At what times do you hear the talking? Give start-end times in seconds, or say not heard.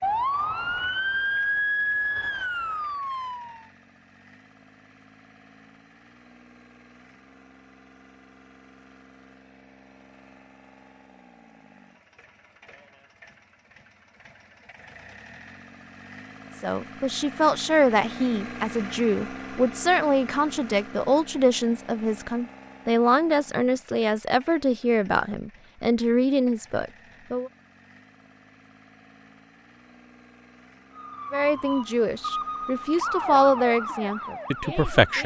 16.6-27.5, 31.3-35.2.